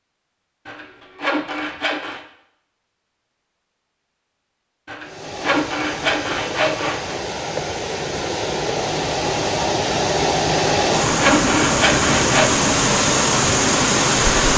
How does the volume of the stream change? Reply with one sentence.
The volume of the stream goes up.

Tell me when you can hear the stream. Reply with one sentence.
The stream can be heard from 5.0 to 14.5 s.